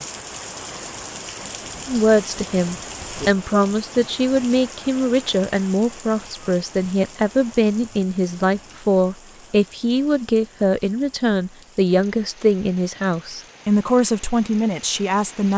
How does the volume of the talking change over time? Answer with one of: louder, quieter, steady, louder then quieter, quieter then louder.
steady.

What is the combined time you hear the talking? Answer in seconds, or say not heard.
14 s.